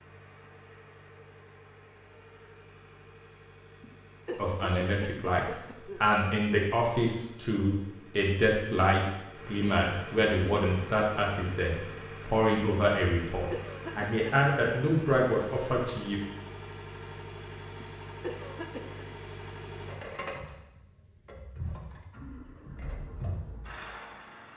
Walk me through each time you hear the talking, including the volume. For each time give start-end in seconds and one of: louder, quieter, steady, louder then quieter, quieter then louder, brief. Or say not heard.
4.3-16.2 steady.